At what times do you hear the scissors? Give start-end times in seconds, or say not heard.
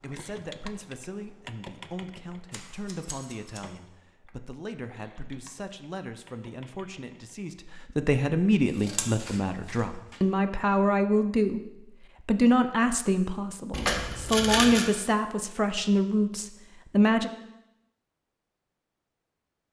2.5-3.7, 8.8-10.2, 13.7-14.8.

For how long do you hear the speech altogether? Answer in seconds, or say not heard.
17 s.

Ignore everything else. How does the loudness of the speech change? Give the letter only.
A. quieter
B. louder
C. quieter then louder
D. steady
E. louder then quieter
B.